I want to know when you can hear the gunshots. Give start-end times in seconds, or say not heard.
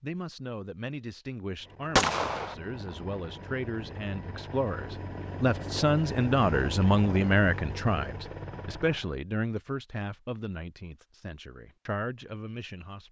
1.9-2.5.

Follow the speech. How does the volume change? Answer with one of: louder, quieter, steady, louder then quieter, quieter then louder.
louder then quieter.